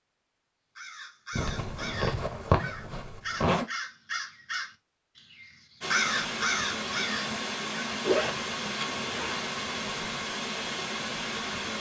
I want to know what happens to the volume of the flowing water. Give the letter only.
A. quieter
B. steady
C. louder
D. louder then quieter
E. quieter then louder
B.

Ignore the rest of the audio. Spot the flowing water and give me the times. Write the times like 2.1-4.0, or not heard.
5.8-11.7.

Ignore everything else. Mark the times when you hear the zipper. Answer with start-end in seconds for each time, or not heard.
1.4-3.6, 8.0-9.5.